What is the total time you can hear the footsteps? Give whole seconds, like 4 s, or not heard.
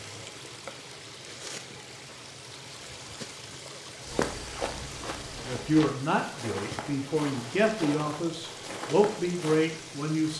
6 s.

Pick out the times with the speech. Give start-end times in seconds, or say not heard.
5.4-10.3.